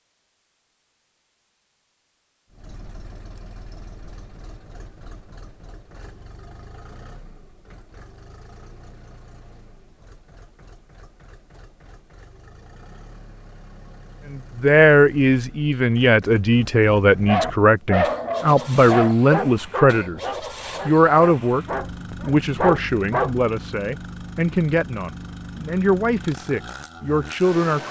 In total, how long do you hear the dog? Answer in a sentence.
The dog can be heard for 6 seconds in total.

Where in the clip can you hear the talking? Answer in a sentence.
You can hear the talking from 14.3 to 20.2 s and from 20.9 to 27.8 s.